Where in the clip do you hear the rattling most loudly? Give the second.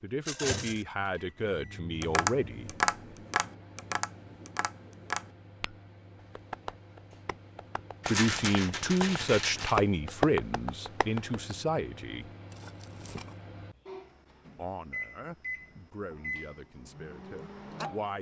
8 s.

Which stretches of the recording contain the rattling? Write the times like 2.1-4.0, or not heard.
0.2-0.8, 8.0-9.8, 12.5-13.3.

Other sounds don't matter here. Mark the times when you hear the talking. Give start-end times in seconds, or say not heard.
0.0-2.8, 8.1-12.3, 14.6-18.1.